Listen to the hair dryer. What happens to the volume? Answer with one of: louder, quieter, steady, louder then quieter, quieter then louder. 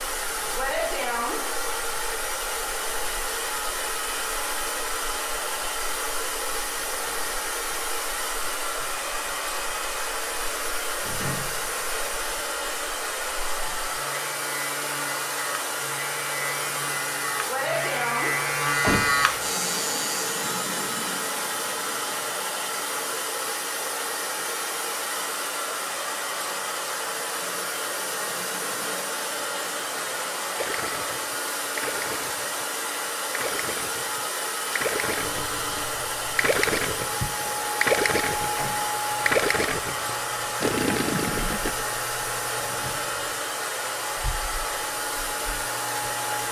steady.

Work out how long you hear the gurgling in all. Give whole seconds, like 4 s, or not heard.
10 s.